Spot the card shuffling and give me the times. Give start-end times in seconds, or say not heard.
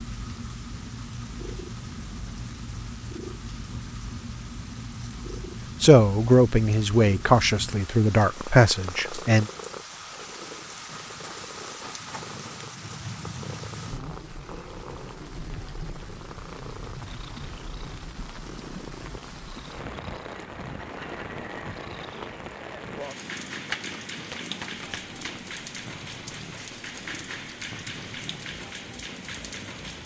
23.5-25.4.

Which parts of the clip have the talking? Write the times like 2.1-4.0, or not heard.
5.8-9.5.